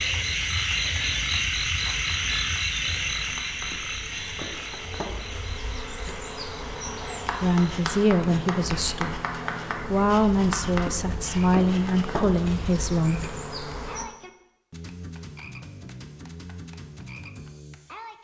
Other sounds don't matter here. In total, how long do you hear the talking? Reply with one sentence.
You can hear the talking for 6 seconds altogether.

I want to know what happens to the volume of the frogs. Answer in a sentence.
The loudness of the frogs goes down.